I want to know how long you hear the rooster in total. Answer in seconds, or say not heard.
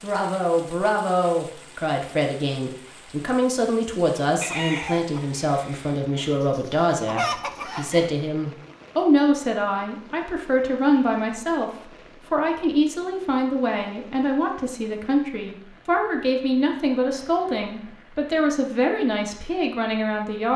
4 s.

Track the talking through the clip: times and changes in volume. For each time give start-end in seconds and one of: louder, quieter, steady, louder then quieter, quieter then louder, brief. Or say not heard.
0.0-20.5 steady.